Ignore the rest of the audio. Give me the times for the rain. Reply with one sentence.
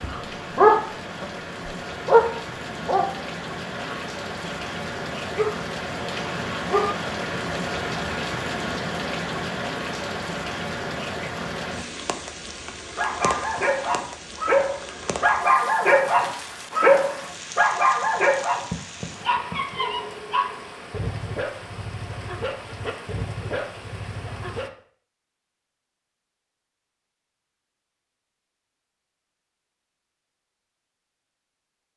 You can hear the rain from 0.0 to 24.7 s.